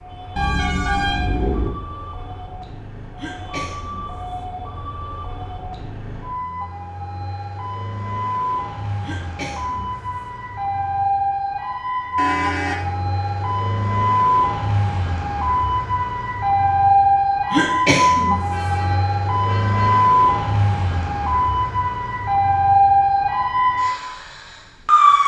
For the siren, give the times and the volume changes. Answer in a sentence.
You can hear the siren from 0.0 to 25.2 s, getting louder.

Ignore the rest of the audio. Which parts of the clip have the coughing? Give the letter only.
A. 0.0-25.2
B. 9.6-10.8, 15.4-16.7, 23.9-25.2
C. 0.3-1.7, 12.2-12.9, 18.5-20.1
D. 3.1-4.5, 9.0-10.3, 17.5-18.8
D.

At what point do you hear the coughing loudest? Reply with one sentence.
The loudest moment of the coughing is at 18 seconds.